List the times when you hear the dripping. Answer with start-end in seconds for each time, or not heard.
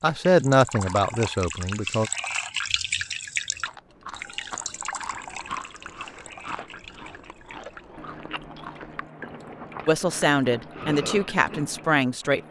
0.0-12.4.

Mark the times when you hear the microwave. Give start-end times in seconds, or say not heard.
not heard.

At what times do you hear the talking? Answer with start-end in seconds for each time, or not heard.
0.0-2.1, 9.8-12.4.